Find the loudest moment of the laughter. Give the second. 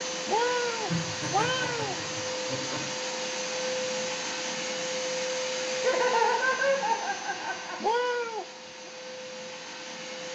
6 s.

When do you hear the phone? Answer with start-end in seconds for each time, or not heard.
not heard.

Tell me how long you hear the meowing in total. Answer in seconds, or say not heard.
3 s.